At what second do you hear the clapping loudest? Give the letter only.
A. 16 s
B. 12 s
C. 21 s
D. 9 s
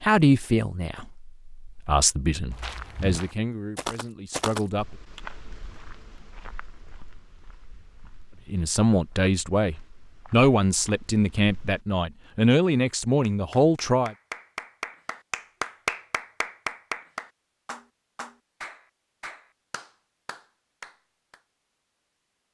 A.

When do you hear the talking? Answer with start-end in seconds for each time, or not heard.
0.0-4.8, 8.4-14.2.